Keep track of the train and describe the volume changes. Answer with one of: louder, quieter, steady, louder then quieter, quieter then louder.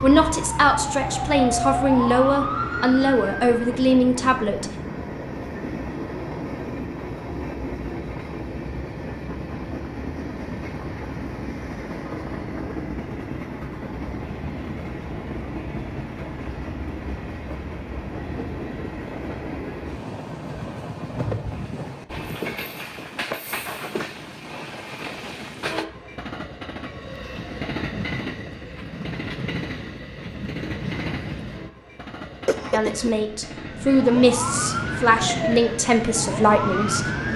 steady.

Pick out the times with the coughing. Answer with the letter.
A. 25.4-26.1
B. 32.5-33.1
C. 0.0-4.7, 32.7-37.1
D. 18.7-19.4
B.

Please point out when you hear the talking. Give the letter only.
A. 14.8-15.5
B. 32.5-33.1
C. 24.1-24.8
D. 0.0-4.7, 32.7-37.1
D.